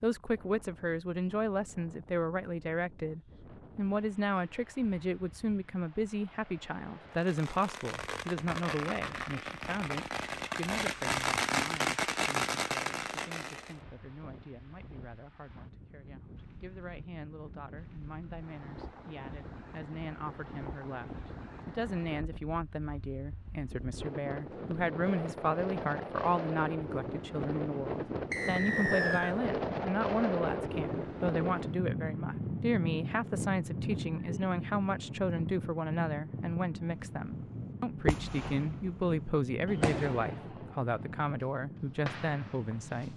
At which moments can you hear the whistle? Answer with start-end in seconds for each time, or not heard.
28.3-29.4.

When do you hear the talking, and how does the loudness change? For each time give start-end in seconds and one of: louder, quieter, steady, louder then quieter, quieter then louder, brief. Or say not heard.
0.0-43.1 quieter then louder.